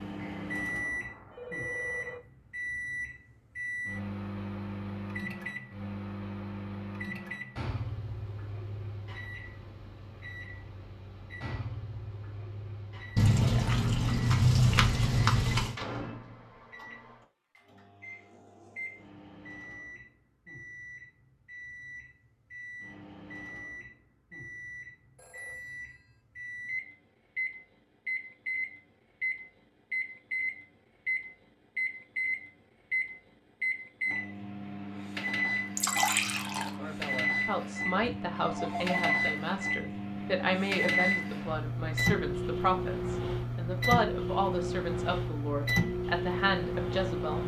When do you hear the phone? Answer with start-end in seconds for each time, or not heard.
0.1-2.2, 25.1-26.2, 38.0-39.1.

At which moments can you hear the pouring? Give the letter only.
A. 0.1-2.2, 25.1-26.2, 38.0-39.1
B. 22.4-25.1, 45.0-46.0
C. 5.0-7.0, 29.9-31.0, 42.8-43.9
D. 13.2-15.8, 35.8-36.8
D.